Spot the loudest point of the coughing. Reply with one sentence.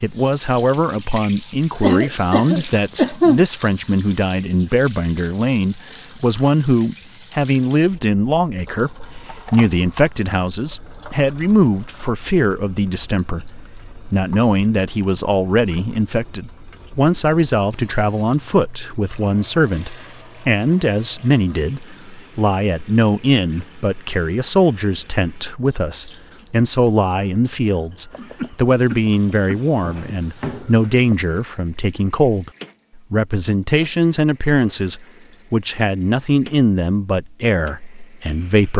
The volume of the coughing peaks at 3 seconds.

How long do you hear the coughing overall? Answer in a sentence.
You can hear the coughing for 3 seconds altogether.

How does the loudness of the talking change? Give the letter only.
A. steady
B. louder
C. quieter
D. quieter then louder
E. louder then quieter
A.